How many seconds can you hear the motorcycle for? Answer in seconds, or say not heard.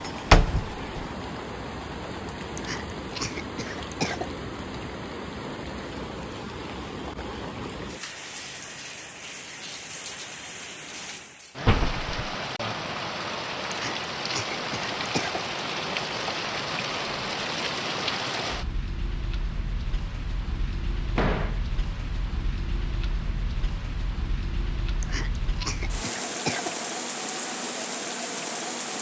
not heard.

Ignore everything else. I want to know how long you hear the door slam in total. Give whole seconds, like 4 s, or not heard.
2 s.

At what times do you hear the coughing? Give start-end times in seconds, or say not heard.
2.5-4.3, 13.7-15.4, 25.0-26.8.